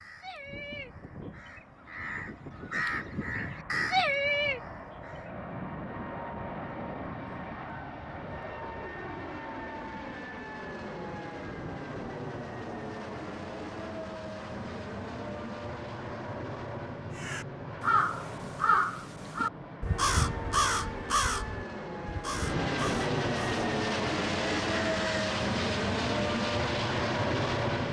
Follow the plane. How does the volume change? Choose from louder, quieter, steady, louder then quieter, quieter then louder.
louder.